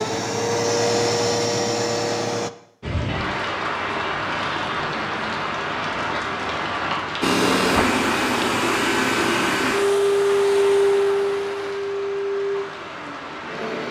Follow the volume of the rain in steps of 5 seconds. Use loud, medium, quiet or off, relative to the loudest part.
loud, loud, medium.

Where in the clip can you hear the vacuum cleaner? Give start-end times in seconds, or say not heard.
0.0-2.5, 7.2-13.8.